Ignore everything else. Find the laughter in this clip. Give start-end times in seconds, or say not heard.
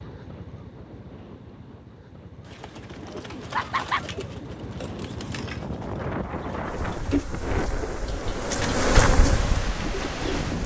3.5-4.0.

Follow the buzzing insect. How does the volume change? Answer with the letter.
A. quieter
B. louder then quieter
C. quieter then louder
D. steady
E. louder
B.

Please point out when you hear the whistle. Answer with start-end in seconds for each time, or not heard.
not heard.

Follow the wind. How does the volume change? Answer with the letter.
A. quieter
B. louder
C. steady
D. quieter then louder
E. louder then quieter
B.